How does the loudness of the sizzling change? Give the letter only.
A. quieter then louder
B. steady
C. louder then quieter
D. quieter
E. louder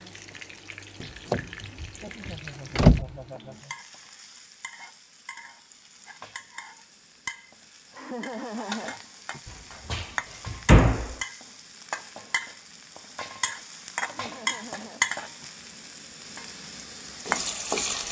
E.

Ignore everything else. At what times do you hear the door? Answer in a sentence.
The door can be heard from 1.0 to 3.0 s and from 9.9 to 11.2 s.